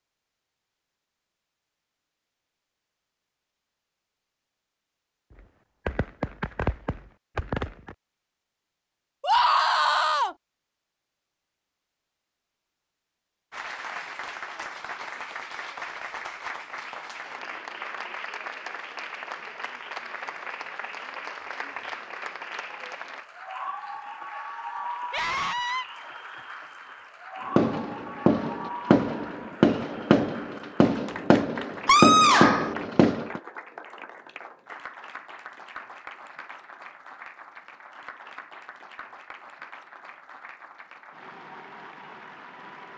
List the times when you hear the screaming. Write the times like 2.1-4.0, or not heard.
9.2-10.3, 25.1-25.9, 31.9-32.8.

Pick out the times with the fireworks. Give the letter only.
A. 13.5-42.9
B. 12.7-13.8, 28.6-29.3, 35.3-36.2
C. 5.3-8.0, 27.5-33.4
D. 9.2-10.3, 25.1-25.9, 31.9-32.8
C.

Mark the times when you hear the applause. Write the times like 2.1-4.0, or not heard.
13.5-42.9.